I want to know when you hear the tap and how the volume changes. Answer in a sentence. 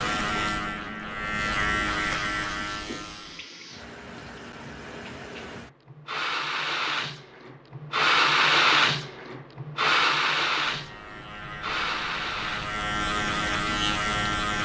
The tap can be heard from 0.0 to 14.3 s, getting louder then quieter.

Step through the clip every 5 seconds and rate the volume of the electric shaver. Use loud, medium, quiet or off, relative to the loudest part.
loud, off, loud.